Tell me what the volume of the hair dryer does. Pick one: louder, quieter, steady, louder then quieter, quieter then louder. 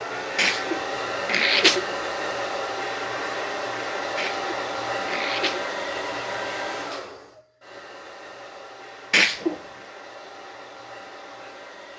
quieter.